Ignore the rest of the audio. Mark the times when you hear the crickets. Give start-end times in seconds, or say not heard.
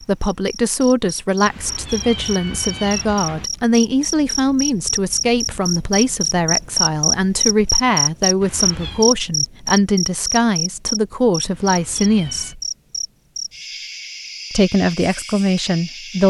0.0-16.2.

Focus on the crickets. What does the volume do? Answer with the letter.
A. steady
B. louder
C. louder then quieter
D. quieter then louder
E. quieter
C.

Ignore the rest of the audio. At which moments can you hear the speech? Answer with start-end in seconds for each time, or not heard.
0.0-12.6, 14.5-16.2.